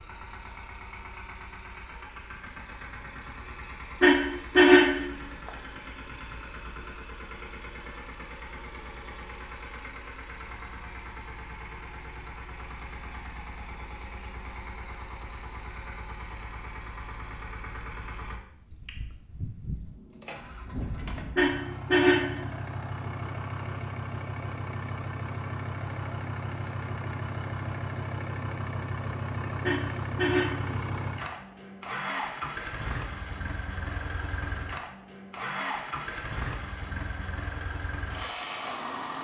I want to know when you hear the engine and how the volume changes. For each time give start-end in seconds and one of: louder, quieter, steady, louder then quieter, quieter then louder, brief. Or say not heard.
0.0-39.1 louder.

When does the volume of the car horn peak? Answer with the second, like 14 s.
5 s.